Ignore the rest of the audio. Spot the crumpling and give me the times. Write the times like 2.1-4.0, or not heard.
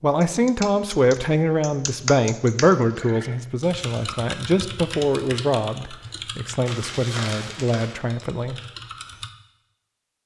6.7-8.0.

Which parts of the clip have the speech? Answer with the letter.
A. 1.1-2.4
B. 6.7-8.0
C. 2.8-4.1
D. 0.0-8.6
D.